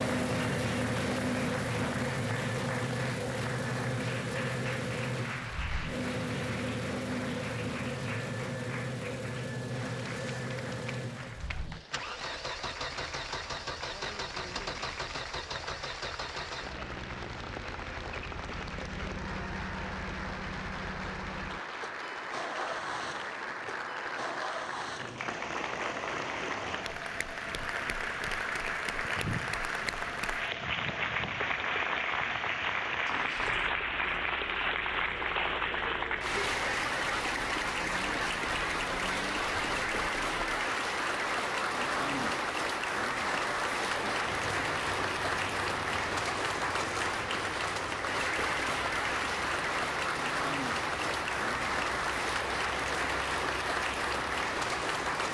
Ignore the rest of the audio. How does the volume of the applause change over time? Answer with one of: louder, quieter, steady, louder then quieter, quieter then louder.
louder.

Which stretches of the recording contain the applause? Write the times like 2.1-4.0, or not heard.
0.0-55.2.